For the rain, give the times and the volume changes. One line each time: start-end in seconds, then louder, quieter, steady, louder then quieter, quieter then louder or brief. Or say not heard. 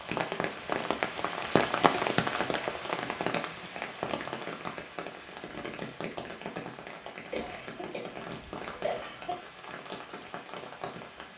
0.0-11.3 quieter.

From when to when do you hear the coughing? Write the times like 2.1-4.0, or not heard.
1.7-3.7, 7.3-9.4.